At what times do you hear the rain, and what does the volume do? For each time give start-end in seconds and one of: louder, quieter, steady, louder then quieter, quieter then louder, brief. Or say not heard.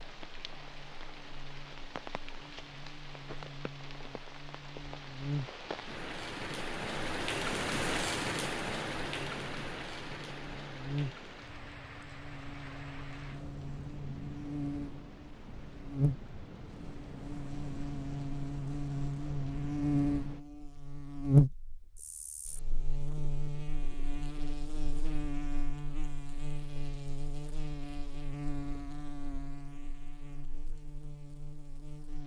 0.0-20.4 louder then quieter.